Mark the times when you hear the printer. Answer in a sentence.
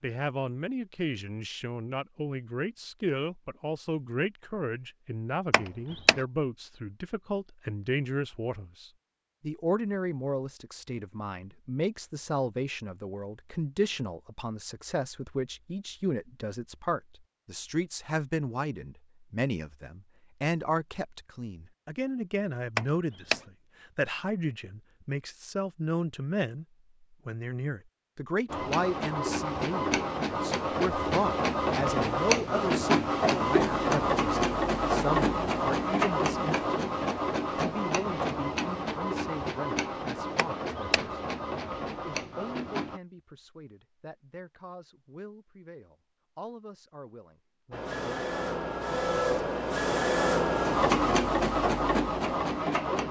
The printer can be heard from 28.4 to 43.0 s and from 47.7 to 53.0 s.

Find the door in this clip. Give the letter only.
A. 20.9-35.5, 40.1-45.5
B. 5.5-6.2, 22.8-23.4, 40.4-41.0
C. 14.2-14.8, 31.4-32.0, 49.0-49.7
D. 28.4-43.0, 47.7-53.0
B.